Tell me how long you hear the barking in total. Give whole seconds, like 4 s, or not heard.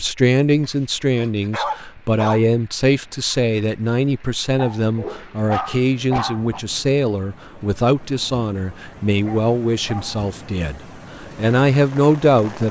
5 s.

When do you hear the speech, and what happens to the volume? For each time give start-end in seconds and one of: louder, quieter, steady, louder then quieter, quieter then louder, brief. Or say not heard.
0.0-12.6 steady.